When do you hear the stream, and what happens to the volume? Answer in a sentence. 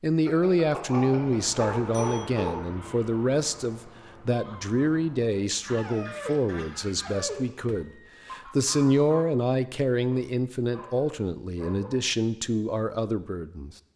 You can't hear the stream here.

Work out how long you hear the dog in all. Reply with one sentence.
You can hear the dog for 6 seconds altogether.